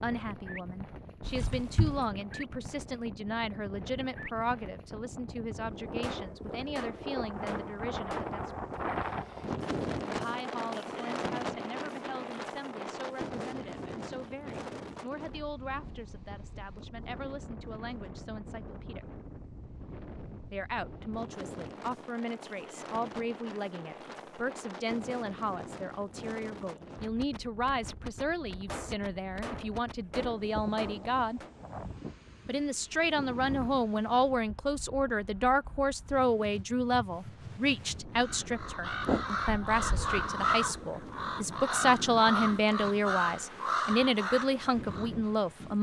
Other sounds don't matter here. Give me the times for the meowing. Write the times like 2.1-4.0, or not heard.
1.2-2.0, 39.0-40.0.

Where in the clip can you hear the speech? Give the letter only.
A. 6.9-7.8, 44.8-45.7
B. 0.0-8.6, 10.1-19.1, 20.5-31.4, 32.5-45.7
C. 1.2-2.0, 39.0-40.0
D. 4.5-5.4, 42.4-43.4
B.